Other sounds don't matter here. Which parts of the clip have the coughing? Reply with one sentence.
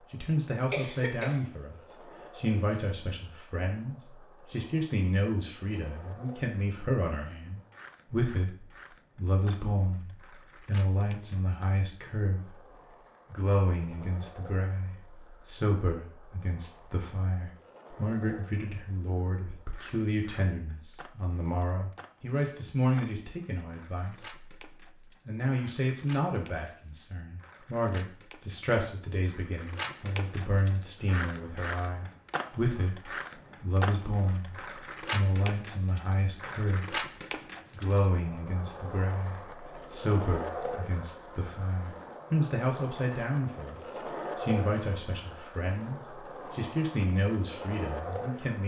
The coughing can be heard from 0.7 to 1.4 s.